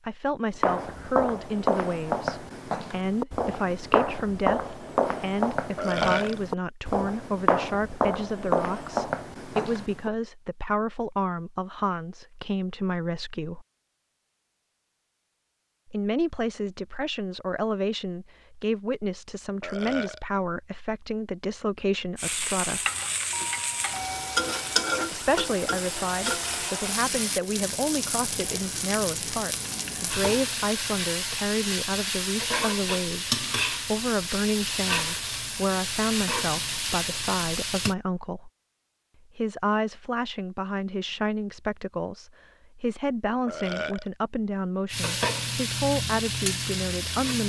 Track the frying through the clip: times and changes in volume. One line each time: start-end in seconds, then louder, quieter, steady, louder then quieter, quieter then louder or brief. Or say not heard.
22.1-38.0 steady
44.9-47.4 brief.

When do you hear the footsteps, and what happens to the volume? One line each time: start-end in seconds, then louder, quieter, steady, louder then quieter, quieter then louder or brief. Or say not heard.
0.6-10.1 steady.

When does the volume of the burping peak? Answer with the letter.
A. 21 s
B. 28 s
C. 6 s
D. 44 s
C.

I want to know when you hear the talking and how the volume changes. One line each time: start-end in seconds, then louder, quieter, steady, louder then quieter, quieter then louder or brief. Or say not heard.
0.1-13.7 steady
15.8-22.9 steady
25.1-38.5 steady
39.4-47.4 steady.